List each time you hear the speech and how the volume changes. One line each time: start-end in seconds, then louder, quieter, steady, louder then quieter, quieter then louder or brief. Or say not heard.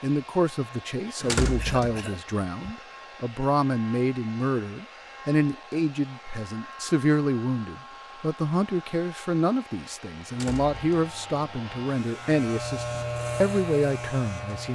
0.0-14.7 steady.